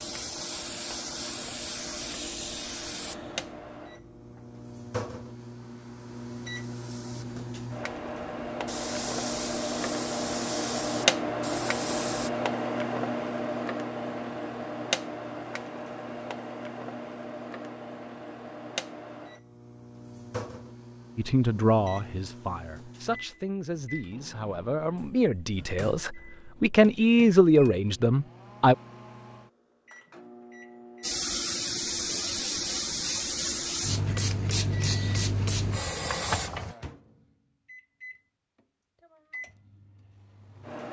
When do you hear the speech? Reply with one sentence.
You can hear the speech from 21.1 to 28.8 s.